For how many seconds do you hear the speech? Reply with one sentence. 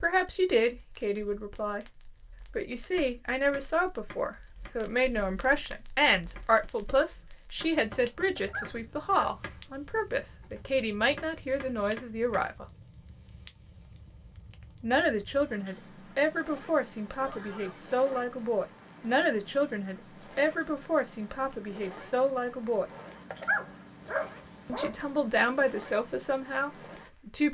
The speech can be heard for 23 seconds in total.